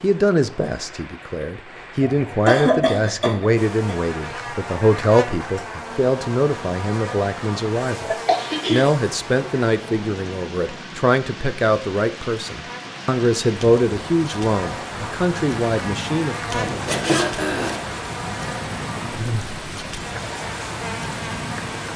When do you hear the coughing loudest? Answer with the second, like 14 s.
3 s.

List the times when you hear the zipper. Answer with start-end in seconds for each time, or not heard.
16.6-17.8.